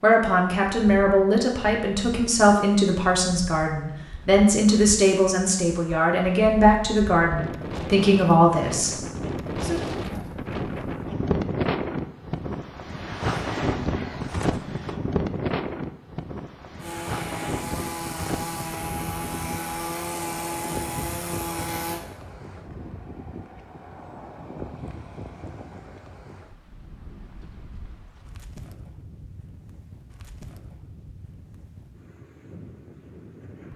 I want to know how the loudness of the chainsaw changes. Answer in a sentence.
The volume of the chainsaw stays about the same.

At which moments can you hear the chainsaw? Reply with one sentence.
The chainsaw can be heard from 16.8 to 22.0 s.